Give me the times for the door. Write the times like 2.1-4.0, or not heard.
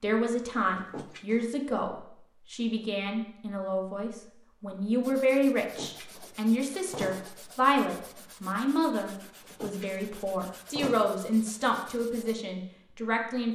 0.8-1.5, 5.6-7.3, 9.4-11.2.